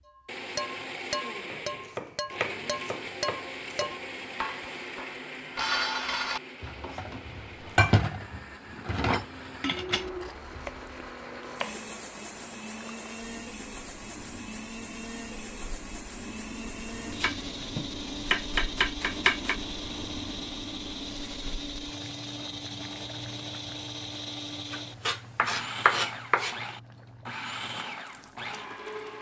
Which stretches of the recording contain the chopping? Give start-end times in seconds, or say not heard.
1.4-4.0, 10.1-11.8, 17.1-19.6, 24.7-26.6.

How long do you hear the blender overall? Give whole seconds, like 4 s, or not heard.
29 s.